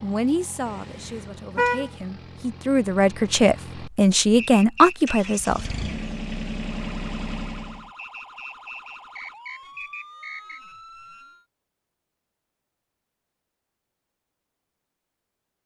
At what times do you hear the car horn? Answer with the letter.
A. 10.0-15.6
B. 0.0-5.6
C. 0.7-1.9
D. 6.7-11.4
C.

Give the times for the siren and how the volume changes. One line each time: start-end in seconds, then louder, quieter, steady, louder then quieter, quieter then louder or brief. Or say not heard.
6.7-11.4 steady.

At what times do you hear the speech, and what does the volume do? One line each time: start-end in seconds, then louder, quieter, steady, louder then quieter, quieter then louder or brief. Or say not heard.
0.0-5.6 louder.